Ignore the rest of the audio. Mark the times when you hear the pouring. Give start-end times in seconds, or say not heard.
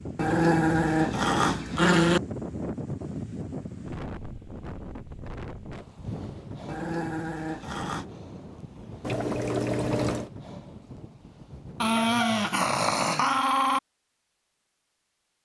9.0-10.3.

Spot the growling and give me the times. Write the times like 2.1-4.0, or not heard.
0.1-2.2, 6.7-8.1, 11.8-13.8.